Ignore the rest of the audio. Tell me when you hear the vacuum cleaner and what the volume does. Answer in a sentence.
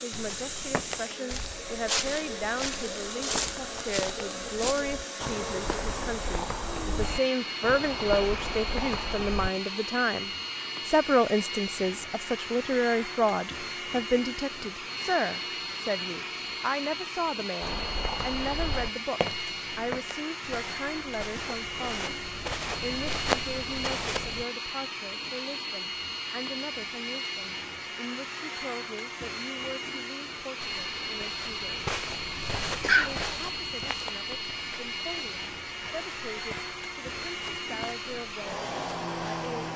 The vacuum cleaner can be heard from 0.0 to 39.7 s, at a steady volume.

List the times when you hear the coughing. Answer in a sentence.
You can hear the coughing from 32.8 to 33.3 s.